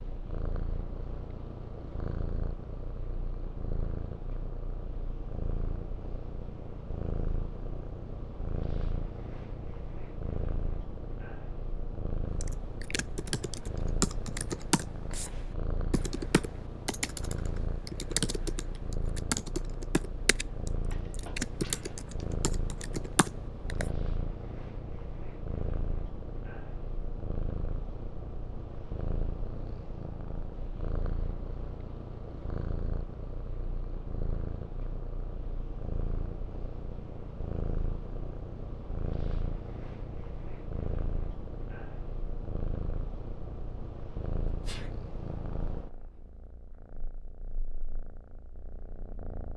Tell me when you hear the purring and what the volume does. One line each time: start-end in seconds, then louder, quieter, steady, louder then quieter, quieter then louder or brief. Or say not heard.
0.0-49.5 steady.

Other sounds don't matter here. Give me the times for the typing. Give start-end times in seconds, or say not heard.
12.4-23.9.